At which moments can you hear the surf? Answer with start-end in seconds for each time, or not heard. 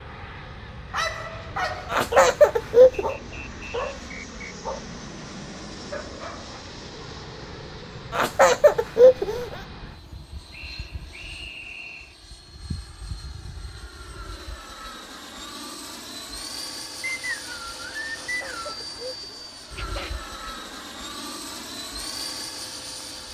not heard.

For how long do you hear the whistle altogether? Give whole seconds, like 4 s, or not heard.
5 s.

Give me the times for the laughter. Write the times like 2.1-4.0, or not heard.
1.9-3.1, 8.1-9.6, 18.1-20.1.